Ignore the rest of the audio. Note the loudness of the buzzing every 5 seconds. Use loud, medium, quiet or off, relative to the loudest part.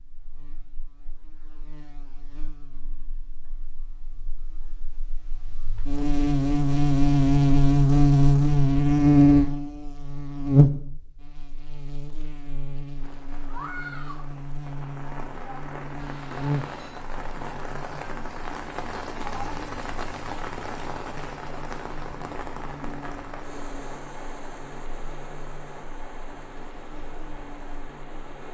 quiet, loud, medium, quiet, quiet, quiet.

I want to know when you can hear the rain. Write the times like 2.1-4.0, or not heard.
12.9-28.4.